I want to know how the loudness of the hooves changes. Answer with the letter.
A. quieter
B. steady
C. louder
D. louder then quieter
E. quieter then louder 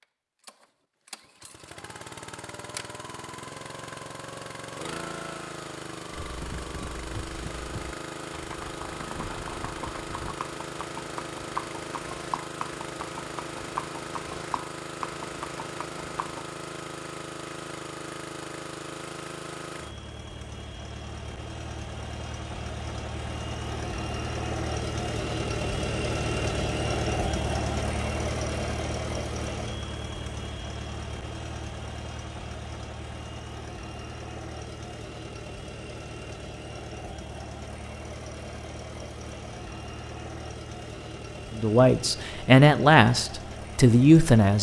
C.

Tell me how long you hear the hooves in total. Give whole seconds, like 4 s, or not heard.
10 s.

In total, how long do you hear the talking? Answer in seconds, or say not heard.
3 s.